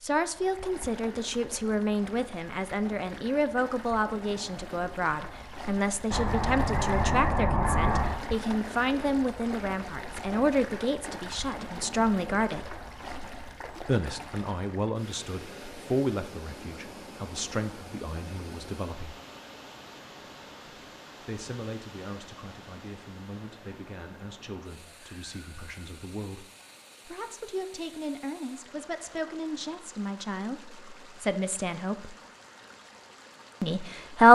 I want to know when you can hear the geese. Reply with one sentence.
The geese can be heard from 6.1 to 8.2 s.